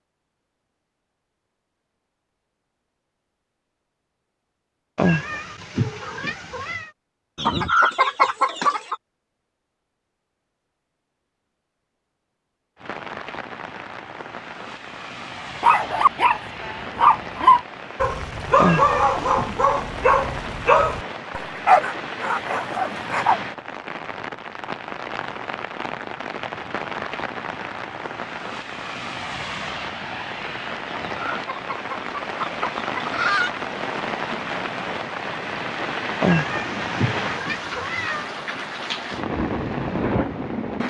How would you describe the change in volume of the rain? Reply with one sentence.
The loudness of the rain goes up.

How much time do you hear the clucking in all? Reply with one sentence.
The clucking can be heard for 4 seconds in total.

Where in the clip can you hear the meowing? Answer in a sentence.
You can hear the meowing from 5.0 to 6.9 s, from 18.6 to 19.4 s and from 36.2 to 38.2 s.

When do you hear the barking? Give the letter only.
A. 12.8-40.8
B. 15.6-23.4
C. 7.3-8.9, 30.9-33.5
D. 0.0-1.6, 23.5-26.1
B.